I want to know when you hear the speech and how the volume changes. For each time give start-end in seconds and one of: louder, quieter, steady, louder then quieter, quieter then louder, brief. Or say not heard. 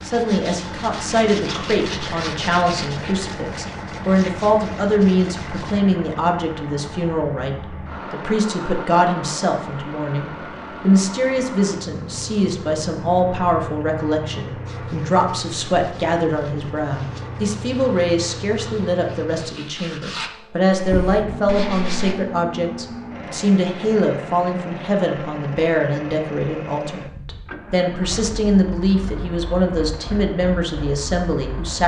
0.0-31.8 steady.